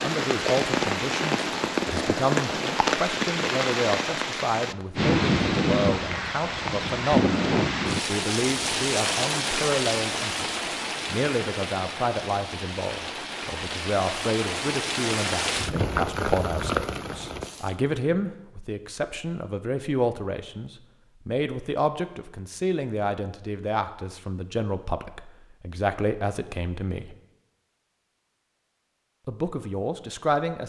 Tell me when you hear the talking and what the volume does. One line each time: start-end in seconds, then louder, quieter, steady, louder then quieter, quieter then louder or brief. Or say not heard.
0.0-27.1 steady
29.2-30.6 brief.